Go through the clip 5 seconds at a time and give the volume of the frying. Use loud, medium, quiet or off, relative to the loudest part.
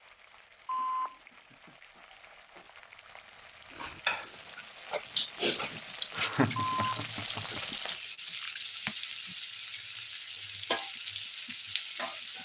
quiet, loud, loud.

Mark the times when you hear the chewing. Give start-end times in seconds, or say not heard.
3.8-8.9.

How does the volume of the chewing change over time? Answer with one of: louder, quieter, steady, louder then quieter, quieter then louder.
louder then quieter.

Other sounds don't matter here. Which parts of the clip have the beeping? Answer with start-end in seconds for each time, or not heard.
0.7-2.6, 6.5-7.0.